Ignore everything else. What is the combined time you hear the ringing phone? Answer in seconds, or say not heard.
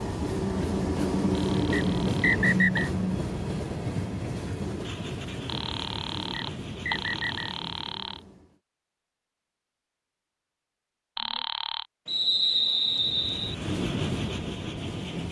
5 s.